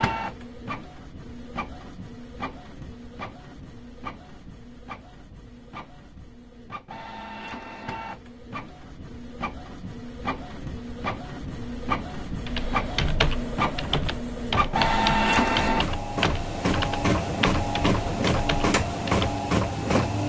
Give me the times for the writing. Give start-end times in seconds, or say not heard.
not heard.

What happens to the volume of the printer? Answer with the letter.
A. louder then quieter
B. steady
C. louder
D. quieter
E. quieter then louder
C.